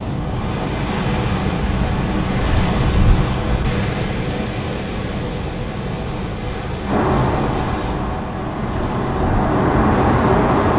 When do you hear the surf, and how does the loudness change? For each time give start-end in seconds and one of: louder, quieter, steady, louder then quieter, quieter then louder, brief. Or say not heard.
0.0-10.7 quieter.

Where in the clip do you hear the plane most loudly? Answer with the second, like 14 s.
10 s.